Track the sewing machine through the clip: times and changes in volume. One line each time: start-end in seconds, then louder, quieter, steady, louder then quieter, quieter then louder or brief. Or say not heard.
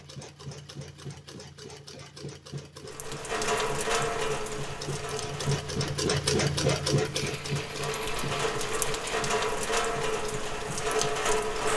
0.0-11.7 louder then quieter.